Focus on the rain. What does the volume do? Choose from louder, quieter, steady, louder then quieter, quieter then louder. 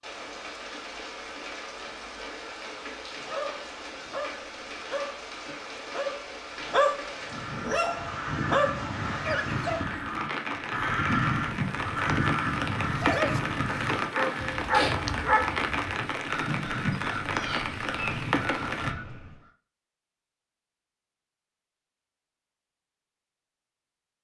louder.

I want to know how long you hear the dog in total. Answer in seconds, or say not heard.
9 s.